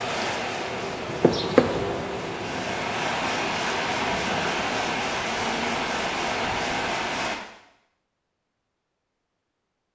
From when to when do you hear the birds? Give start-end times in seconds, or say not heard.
not heard.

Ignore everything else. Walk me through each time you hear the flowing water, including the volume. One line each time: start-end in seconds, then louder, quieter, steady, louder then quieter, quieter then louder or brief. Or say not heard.
0.0-7.4 louder.